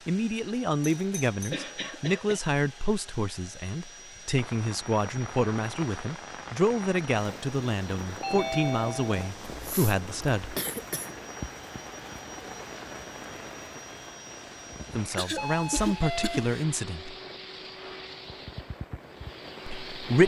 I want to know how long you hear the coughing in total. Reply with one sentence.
You can hear the coughing for 4 seconds altogether.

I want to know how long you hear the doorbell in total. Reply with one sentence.
The doorbell can be heard for 3 seconds in total.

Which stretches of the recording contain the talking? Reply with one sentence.
The talking can be heard from 0.1 to 10.6 s, from 14.9 to 17.1 s and from 19.6 to 20.2 s.